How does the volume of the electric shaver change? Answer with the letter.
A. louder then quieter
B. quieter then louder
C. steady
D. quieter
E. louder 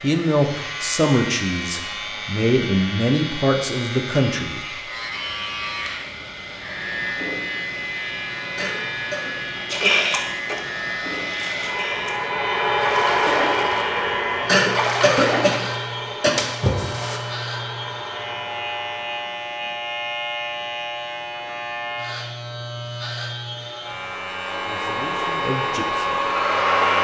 C.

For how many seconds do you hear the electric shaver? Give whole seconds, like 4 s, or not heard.
27 s.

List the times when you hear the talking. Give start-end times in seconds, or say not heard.
0.0-4.7, 24.6-26.3.